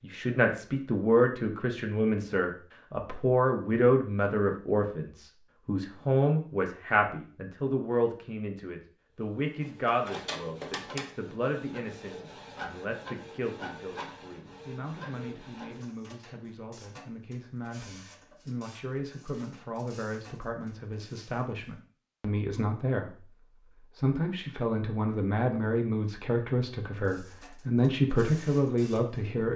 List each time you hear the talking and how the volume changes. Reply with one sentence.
You can hear the talking from 0.0 to 29.5 s, getting quieter then louder.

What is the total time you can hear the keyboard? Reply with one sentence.
The keyboard can't be heard in this clip.